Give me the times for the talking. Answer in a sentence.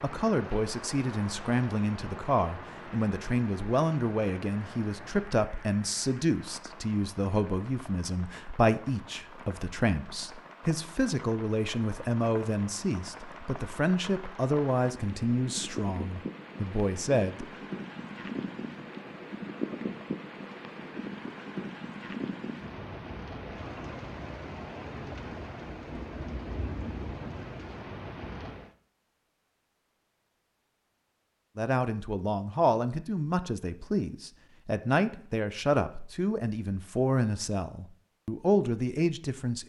You can hear the talking from 0.0 to 17.4 s and from 31.6 to 39.6 s.